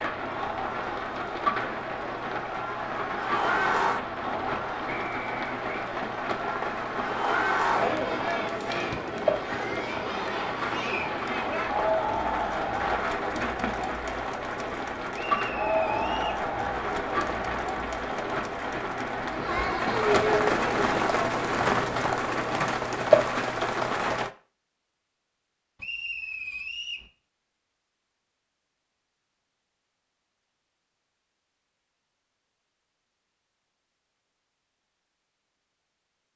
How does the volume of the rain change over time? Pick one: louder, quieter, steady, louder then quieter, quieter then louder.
louder.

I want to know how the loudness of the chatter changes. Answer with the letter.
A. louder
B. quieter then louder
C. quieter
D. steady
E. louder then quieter
D.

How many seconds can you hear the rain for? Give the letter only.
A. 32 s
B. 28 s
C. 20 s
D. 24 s
D.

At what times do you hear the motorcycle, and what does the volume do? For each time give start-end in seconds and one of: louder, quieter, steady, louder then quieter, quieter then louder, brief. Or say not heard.
not heard.